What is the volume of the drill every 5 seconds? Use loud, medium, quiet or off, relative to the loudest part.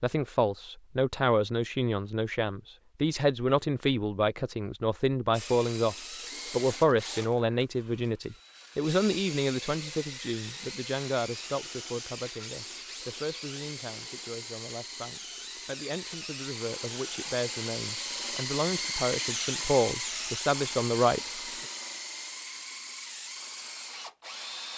off, medium, medium, loud, loud.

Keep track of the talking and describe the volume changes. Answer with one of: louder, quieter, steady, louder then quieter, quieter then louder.
quieter then louder.